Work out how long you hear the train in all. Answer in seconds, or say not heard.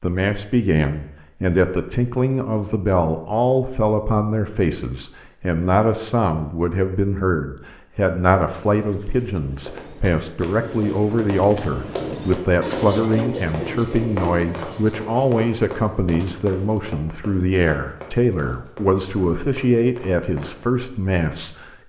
not heard.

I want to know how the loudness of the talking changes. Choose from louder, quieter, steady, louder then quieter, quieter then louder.
steady.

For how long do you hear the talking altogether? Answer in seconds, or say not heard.
22 s.